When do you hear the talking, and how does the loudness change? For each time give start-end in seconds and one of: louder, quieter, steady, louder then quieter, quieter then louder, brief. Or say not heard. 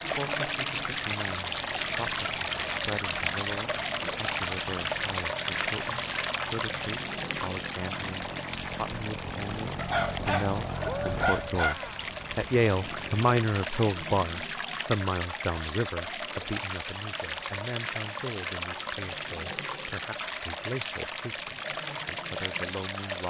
0.0-23.2 louder then quieter.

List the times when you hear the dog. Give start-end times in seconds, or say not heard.
9.8-11.8.